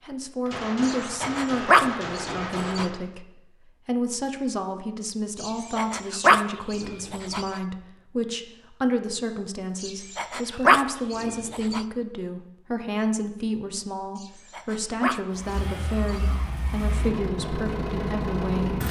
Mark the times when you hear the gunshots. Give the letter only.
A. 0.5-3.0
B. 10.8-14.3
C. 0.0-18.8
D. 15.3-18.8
A.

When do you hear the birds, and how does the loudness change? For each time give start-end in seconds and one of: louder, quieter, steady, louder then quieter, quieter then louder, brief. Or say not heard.
not heard.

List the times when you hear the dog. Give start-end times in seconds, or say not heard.
0.8-2.9, 5.4-7.6, 9.8-11.8, 14.2-16.4.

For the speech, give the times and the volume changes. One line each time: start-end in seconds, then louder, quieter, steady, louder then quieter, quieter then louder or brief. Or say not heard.
0.0-18.8 steady.